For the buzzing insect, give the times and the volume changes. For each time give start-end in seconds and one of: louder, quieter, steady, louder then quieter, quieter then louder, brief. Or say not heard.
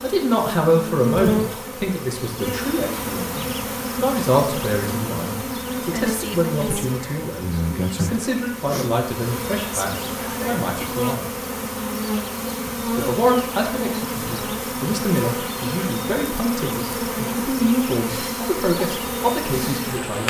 0.0-20.2 steady.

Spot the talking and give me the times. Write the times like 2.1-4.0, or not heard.
0.0-11.3, 12.9-20.2.